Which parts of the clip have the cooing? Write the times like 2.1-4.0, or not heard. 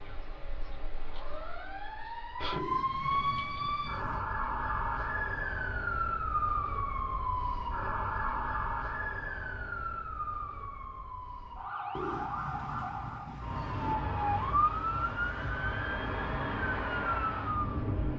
2.5-4.2, 11.9-13.9.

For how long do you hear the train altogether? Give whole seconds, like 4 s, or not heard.
not heard.